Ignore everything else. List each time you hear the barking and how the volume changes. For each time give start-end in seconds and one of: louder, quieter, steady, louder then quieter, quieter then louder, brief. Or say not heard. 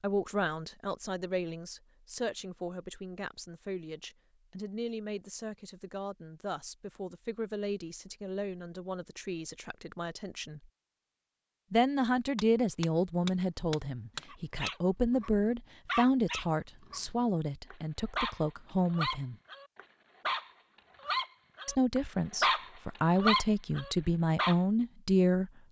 14.3-24.6 louder.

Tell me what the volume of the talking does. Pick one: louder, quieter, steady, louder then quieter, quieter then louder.
louder.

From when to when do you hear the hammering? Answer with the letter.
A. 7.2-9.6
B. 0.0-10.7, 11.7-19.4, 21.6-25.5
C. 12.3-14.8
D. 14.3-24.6
C.